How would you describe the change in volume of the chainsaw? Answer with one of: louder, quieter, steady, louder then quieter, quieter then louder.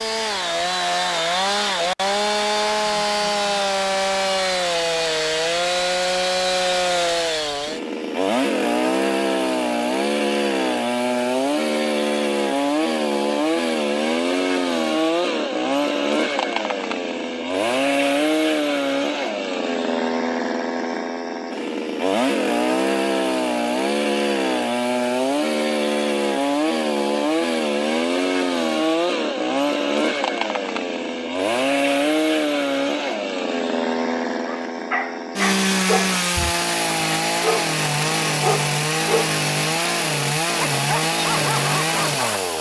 steady.